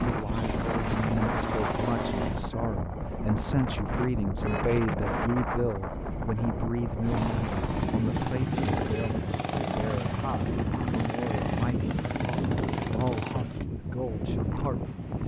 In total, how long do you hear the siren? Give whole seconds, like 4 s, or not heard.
not heard.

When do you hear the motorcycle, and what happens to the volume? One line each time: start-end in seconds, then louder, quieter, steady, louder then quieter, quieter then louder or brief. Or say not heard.
0.0-2.4 brief
7.0-13.7 steady.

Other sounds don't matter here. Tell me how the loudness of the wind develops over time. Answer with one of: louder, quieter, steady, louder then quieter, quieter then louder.
steady.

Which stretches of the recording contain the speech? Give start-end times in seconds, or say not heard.
0.1-14.9.